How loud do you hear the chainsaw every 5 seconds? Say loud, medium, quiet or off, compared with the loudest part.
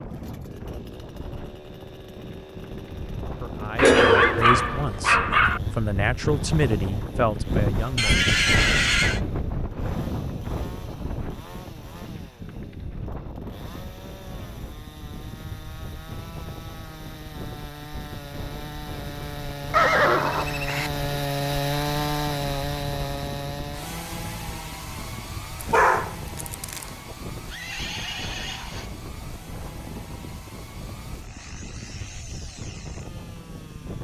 quiet, quiet, quiet, medium, loud, quiet, quiet.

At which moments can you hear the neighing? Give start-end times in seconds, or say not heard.
8.0-9.2, 19.7-20.9, 27.4-28.9.